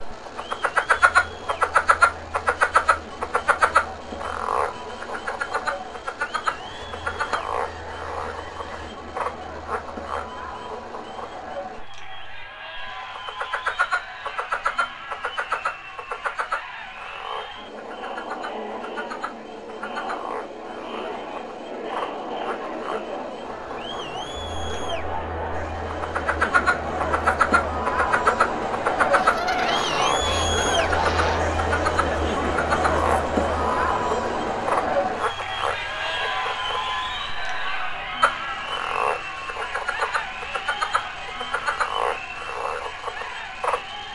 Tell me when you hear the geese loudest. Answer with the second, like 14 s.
30 s.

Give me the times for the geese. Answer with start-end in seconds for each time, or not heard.
6.5-8.9, 29.1-31.6.